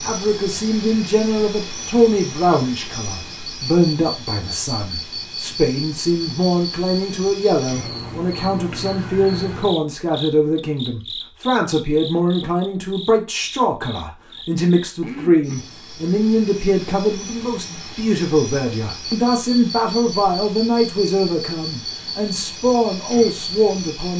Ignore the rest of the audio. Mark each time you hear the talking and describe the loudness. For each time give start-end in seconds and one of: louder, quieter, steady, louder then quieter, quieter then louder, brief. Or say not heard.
0.0-24.1 steady.